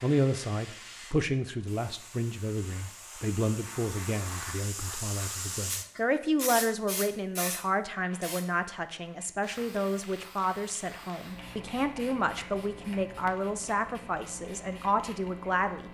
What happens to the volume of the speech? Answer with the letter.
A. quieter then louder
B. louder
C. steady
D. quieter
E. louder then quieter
C.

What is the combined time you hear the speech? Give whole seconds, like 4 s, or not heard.
16 s.